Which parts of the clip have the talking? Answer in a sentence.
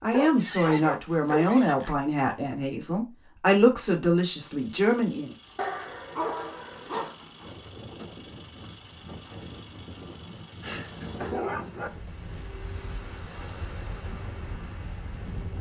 The talking can be heard from 0.0 to 5.3 s.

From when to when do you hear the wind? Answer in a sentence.
You can hear the wind from 7.3 to 15.5 s.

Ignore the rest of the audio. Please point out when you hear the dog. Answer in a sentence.
The dog can be heard from 0.1 to 1.9 s, from 5.5 to 7.2 s and from 10.6 to 11.9 s.